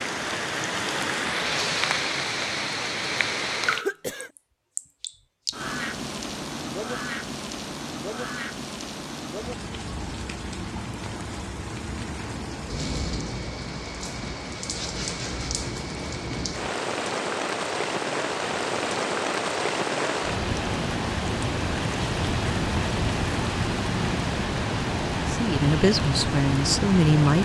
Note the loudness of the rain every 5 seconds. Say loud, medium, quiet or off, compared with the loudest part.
loud, medium, medium, loud, loud, loud.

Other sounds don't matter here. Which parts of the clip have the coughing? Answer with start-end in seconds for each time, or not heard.
3.6-4.3.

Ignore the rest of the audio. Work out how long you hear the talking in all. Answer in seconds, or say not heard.
2 s.